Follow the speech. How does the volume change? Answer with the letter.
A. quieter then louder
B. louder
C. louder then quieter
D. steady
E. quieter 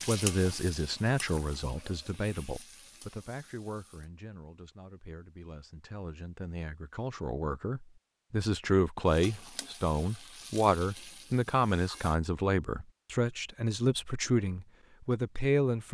A.